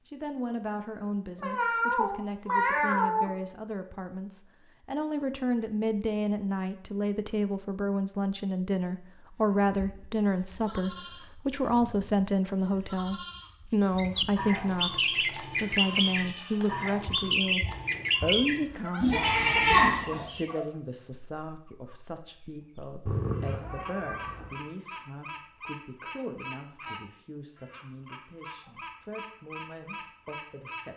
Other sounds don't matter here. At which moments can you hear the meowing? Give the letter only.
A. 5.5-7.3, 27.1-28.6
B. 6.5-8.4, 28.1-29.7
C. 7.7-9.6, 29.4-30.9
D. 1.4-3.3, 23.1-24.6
D.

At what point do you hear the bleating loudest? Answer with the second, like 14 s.
20 s.